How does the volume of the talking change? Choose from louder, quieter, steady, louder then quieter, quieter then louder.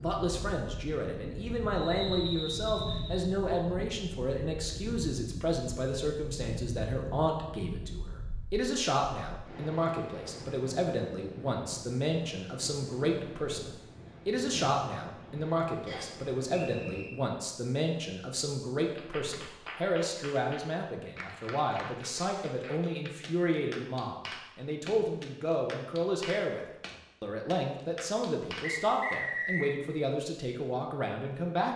steady.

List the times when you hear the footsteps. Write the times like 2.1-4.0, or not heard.
not heard.